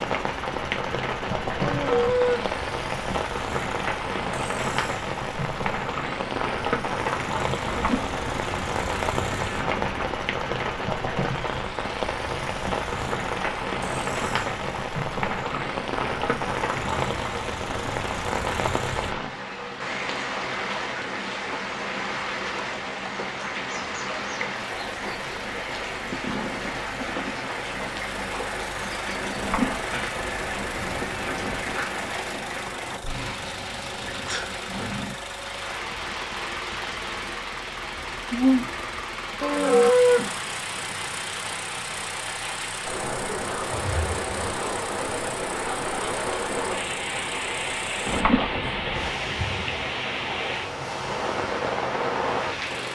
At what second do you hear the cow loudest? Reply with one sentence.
The volume of the cow peaks at 40 seconds.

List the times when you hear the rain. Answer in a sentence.
The rain can be heard from 0.0 to 52.9 s.